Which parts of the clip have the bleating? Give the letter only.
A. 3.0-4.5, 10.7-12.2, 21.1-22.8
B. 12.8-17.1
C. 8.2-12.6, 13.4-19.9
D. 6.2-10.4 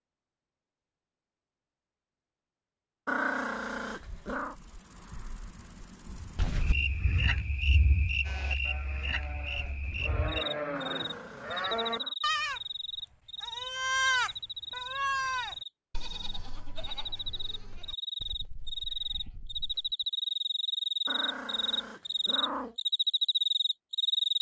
C.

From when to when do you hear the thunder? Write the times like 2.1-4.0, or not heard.
6.2-10.4.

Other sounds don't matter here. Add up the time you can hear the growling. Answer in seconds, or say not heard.
5 s.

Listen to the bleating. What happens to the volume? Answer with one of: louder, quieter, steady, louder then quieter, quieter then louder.
louder then quieter.